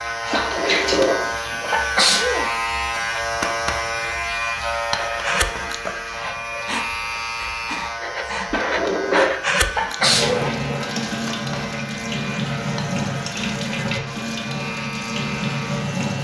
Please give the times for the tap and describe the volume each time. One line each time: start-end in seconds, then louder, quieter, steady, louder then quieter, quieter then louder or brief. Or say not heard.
0.0-1.6 brief
10.0-16.1 steady.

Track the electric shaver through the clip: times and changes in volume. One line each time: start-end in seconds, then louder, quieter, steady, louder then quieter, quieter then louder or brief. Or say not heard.
0.0-16.1 quieter.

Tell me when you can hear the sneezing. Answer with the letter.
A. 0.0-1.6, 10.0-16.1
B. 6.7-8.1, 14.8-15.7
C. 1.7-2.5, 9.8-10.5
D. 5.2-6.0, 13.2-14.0
C.